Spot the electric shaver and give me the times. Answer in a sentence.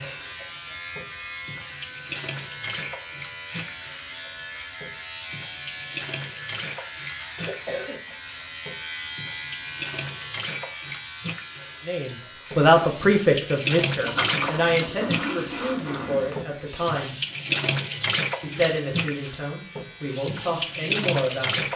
You can hear the electric shaver from 0.0 to 21.7 s.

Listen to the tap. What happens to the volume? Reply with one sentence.
The volume of the tap goes up.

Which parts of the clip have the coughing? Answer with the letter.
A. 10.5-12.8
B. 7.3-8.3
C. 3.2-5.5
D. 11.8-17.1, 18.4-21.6
B.